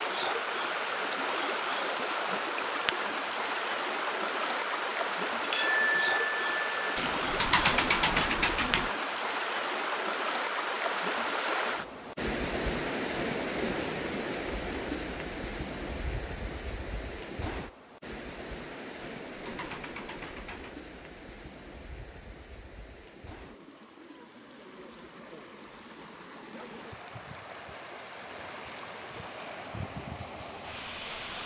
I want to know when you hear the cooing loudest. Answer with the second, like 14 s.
8 s.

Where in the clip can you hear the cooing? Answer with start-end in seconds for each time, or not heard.
7.0-8.9, 19.2-20.8.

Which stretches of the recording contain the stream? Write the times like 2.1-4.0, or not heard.
0.0-31.4.